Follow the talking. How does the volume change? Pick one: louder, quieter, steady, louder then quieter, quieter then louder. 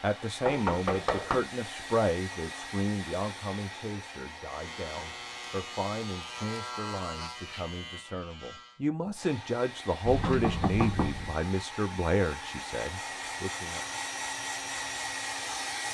quieter then louder.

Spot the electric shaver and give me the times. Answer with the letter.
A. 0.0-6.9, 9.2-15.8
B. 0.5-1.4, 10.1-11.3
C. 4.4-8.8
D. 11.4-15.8
C.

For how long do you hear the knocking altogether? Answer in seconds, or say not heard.
2 s.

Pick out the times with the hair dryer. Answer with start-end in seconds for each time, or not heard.
0.0-6.9, 9.2-15.8.